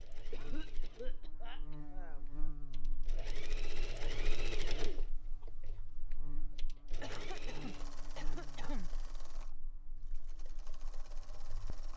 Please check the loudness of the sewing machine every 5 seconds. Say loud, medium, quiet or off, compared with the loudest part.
loud, medium, quiet.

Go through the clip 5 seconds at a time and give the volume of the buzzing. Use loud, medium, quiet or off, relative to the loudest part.
loud, loud, medium.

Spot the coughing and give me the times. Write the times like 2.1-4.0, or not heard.
0.3-2.2, 7.0-8.9.